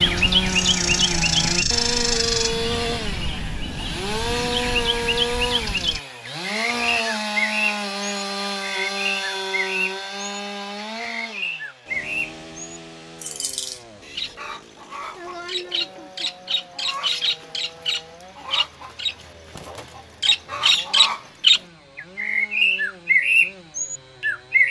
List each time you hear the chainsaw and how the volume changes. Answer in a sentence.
You can hear the chainsaw from 0.0 to 24.6 s, getting quieter.